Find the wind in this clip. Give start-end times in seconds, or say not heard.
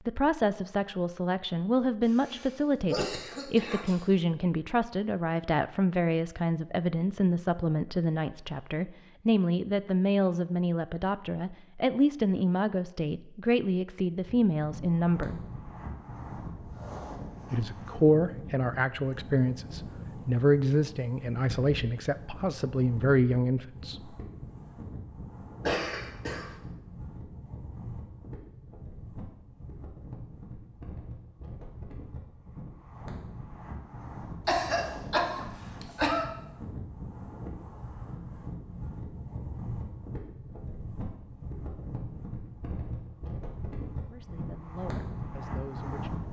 14.2-46.2.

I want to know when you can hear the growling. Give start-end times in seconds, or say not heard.
not heard.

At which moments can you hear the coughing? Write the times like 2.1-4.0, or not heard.
2.0-4.0, 25.6-26.5, 34.5-36.3.